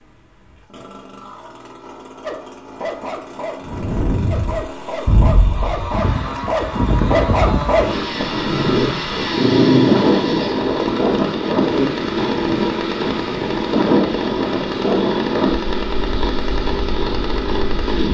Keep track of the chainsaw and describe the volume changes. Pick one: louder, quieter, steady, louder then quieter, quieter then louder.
louder.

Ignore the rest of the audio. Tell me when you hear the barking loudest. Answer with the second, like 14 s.
10 s.